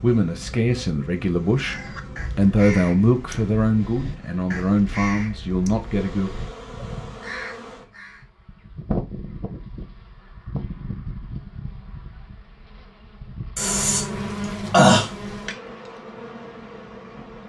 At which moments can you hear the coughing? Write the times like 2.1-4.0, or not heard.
13.6-15.1.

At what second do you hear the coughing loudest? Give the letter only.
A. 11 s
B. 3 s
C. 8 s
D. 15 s
D.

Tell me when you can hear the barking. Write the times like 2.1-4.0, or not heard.
not heard.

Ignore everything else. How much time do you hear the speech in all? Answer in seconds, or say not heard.
6 s.